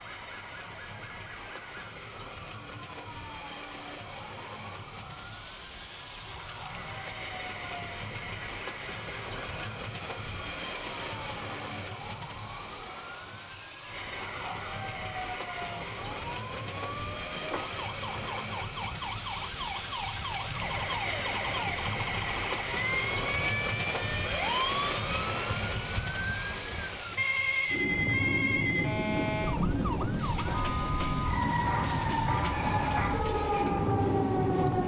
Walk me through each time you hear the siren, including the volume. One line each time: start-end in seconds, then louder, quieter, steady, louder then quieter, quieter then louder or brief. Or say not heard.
0.0-34.8 louder.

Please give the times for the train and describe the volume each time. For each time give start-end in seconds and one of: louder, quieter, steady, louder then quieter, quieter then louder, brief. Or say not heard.
0.0-34.8 louder.